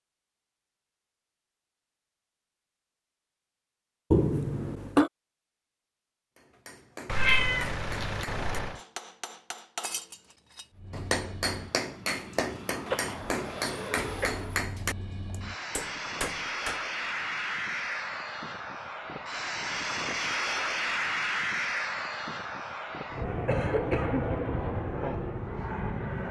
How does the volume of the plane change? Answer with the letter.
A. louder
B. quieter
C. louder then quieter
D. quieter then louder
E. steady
A.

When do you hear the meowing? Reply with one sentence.
The meowing can be heard from 7.0 to 8.8 s.